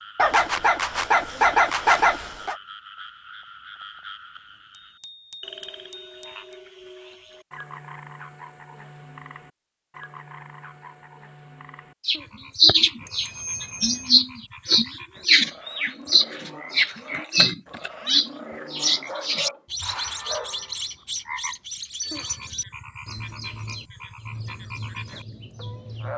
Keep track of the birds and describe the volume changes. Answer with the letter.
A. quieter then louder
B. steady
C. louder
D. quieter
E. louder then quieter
D.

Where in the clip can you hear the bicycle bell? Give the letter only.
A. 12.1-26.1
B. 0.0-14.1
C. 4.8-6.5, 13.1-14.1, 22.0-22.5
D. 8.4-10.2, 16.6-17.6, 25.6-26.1
C.